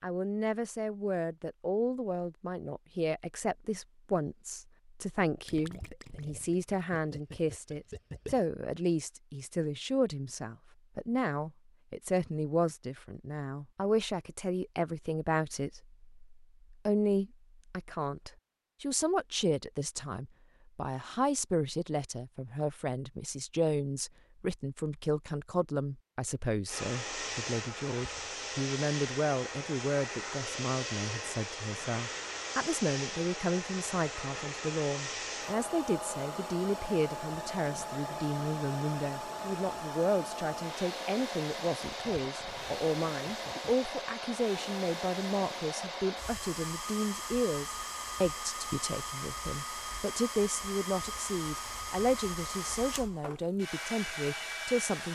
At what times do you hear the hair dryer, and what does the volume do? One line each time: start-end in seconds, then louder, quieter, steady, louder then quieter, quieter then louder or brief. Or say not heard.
26.6-55.1 steady.